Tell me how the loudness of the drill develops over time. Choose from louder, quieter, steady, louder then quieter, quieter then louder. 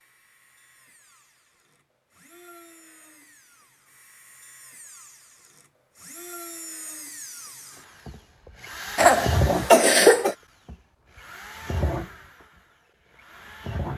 louder then quieter.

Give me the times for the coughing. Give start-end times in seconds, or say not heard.
8.9-10.3.